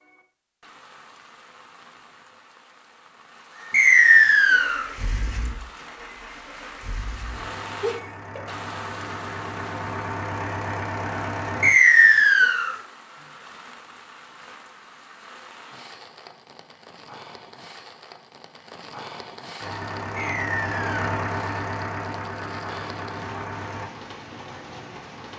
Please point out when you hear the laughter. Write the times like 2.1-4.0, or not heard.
7.8-8.4.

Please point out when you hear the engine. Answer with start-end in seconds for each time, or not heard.
4.5-11.8, 19.6-23.9.